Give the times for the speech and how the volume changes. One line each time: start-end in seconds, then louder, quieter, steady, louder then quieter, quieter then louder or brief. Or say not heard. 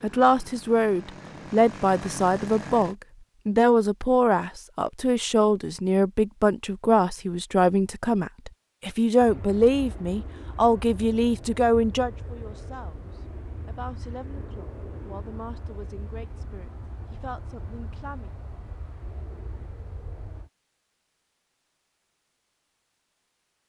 0.0-18.3 quieter.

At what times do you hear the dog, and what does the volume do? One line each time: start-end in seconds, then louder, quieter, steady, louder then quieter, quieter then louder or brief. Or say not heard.
not heard.